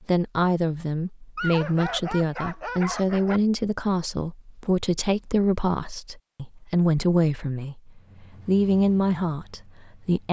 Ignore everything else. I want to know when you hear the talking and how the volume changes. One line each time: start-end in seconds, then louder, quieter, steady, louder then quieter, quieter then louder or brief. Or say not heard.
0.1-10.2 steady.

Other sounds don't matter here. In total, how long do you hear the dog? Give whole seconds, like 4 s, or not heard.
2 s.